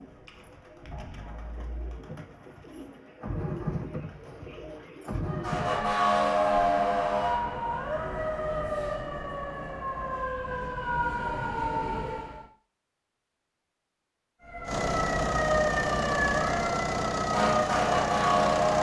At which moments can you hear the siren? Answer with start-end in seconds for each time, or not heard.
5.2-12.4, 14.4-18.7.